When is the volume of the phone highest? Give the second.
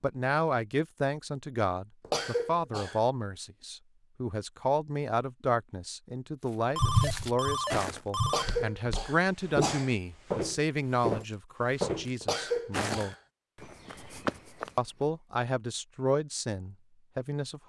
7 s.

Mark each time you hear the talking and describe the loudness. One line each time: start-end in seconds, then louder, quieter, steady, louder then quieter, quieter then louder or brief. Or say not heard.
0.0-13.2 steady
14.8-17.6 brief.